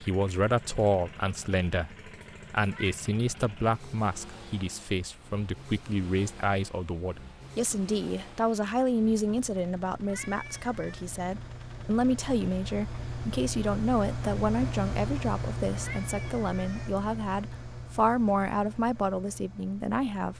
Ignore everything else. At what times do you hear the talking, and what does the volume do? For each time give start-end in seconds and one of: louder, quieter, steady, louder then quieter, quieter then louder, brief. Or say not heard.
0.0-20.3 steady.